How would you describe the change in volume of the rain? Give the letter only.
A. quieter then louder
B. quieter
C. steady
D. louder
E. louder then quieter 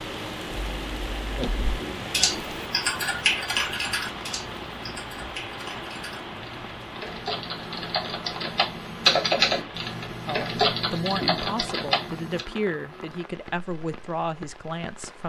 B.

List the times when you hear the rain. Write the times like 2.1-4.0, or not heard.
0.0-15.2.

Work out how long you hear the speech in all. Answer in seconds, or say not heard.
5 s.